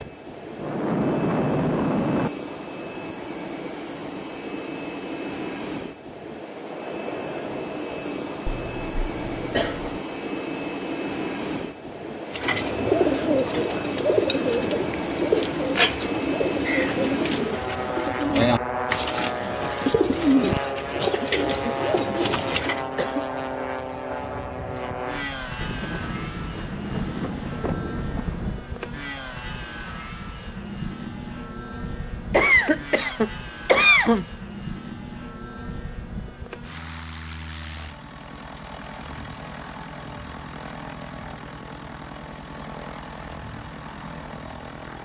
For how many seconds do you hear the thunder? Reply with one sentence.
The thunder can be heard for 5 seconds in total.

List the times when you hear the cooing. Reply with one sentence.
The cooing can be heard from 12.3 to 22.9 s.